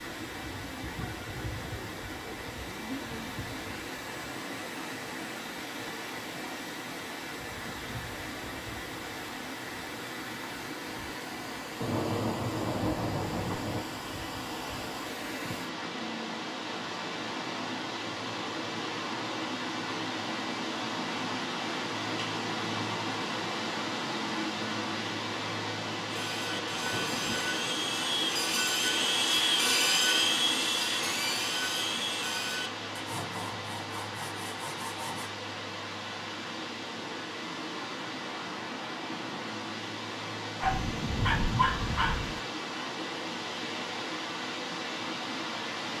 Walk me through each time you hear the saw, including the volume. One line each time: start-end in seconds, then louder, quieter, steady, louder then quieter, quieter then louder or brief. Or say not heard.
26.1-35.3 louder then quieter.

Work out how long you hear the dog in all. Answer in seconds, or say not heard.
2 s.